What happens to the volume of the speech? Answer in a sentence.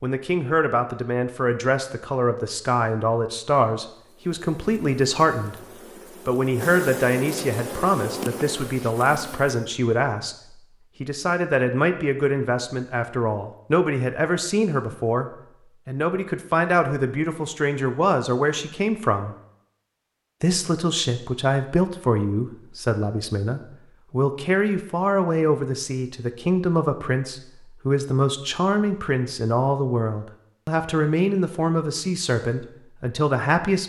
The volume of the speech stays about the same.